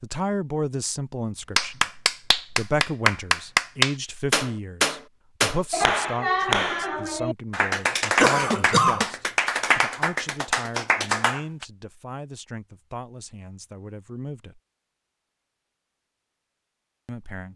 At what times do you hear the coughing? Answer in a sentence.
You can hear the coughing from 8.2 to 9.1 s.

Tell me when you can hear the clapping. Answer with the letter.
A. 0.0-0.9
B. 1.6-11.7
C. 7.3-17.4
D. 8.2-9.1
B.